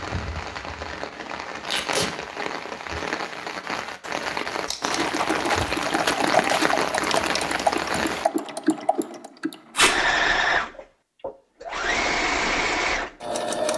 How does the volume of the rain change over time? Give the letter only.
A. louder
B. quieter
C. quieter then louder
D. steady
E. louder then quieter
A.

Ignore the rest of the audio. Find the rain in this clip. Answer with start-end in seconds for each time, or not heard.
0.0-8.2.